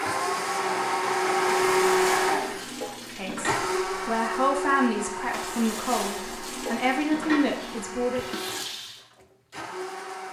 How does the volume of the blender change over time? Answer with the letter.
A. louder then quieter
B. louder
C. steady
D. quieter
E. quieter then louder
D.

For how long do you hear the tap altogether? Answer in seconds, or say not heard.
6 s.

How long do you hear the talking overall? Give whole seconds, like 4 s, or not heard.
5 s.